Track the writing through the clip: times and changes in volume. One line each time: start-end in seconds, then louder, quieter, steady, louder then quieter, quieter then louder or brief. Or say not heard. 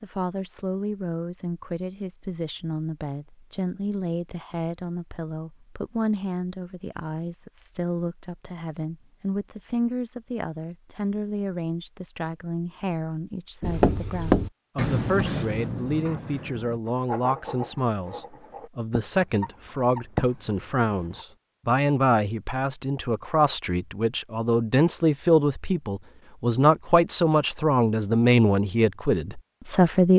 13.6-21.2 quieter then louder.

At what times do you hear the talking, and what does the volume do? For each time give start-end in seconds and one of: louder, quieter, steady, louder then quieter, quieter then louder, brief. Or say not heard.
0.0-30.1 louder.